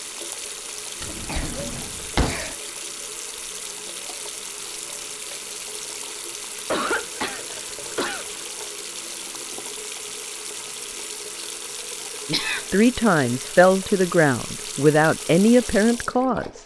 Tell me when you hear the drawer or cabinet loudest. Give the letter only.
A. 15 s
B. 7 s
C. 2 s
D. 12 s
C.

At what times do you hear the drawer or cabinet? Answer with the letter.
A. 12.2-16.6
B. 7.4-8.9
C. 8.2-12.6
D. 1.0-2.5
D.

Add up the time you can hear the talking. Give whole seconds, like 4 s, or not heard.
4 s.